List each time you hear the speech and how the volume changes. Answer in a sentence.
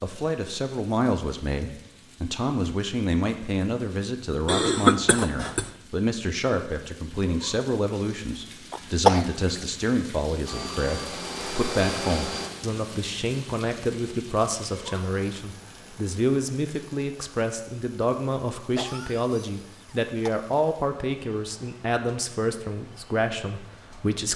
You can hear the speech from 0.0 to 24.3 s, at a steady volume.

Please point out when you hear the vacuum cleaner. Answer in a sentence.
The vacuum cleaner can be heard from 10.4 to 12.5 s.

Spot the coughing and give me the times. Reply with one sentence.
You can hear the coughing from 4.5 to 5.7 s, from 8.7 to 9.2 s and from 18.8 to 20.5 s.